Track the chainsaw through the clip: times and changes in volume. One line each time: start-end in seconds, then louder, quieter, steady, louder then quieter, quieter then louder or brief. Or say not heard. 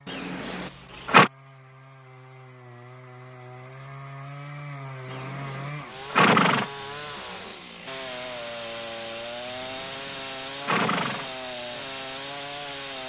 0.0-13.0 louder.